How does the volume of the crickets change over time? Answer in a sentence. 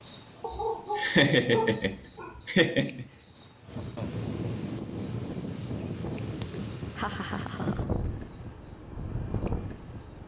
The volume of the crickets goes down.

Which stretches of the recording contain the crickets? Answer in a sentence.
You can hear the crickets from 0.0 to 10.2 s.